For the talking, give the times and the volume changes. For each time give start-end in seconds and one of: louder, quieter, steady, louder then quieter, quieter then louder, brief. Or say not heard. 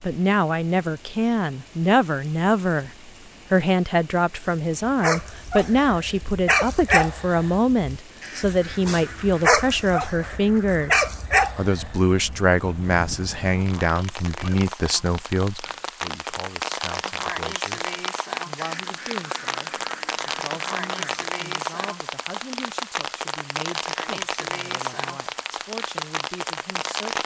0.0-27.2 quieter.